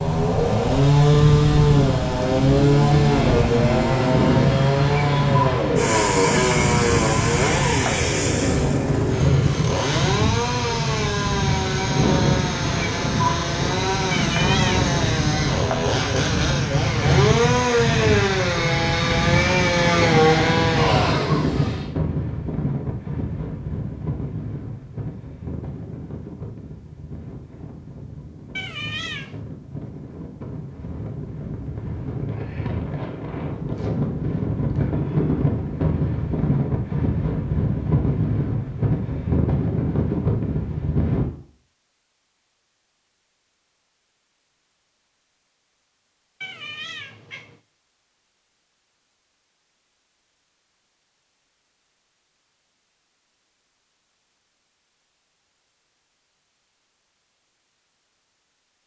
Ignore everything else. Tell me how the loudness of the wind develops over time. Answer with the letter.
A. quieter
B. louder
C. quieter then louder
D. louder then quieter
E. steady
C.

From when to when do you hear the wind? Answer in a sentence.
You can hear the wind from 0.0 to 41.2 s.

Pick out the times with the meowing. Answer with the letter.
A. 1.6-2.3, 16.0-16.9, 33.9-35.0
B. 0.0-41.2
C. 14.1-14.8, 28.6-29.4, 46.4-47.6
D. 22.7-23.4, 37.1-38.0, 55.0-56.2
C.